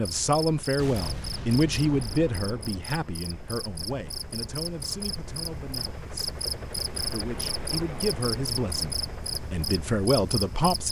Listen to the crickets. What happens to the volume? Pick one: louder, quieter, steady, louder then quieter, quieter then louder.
louder.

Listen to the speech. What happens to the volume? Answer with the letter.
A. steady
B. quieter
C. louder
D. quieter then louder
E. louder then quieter
D.